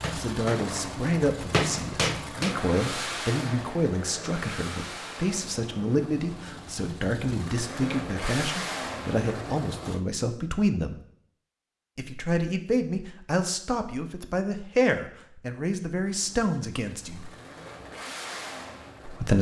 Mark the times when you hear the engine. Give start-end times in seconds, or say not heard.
0.0-10.0, 16.0-19.3.